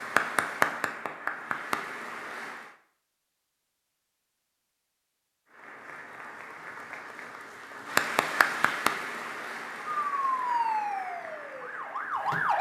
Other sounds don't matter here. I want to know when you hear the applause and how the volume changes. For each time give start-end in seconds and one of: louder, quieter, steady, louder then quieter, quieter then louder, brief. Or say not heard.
0.0-2.7 brief
5.5-12.5 louder then quieter.